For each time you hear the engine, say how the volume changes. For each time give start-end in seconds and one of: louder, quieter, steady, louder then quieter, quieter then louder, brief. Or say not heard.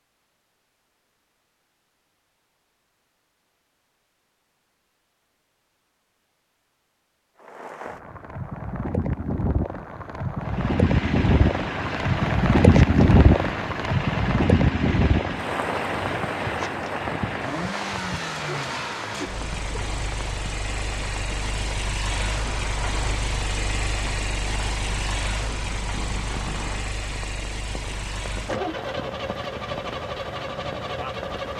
10.4-31.5 steady.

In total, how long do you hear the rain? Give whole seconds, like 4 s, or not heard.
24 s.